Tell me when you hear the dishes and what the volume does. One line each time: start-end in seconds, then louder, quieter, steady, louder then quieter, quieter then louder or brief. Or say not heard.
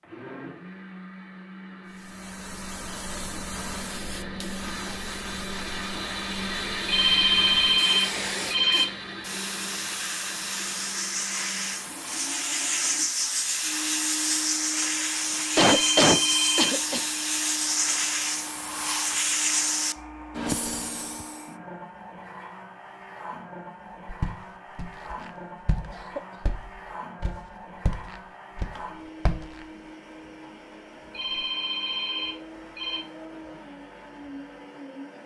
not heard.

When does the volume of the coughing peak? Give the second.
16 s.